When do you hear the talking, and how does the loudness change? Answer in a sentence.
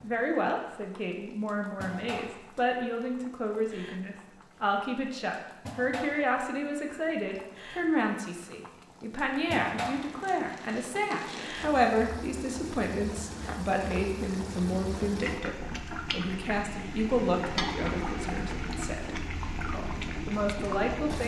The talking can be heard from 0.0 to 21.2 s, at a steady volume.